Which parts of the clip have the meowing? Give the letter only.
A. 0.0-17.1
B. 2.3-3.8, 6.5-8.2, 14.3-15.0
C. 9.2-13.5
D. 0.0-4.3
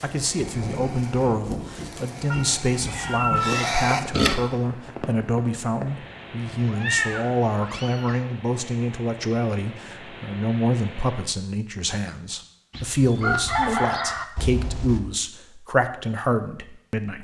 B.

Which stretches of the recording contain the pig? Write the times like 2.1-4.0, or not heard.
0.0-4.3.